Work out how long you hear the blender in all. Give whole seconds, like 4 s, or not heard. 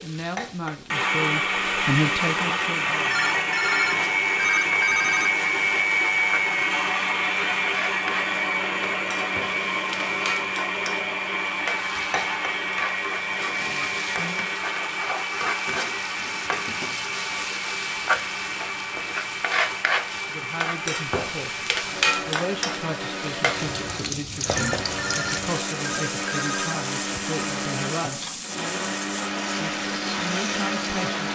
31 s.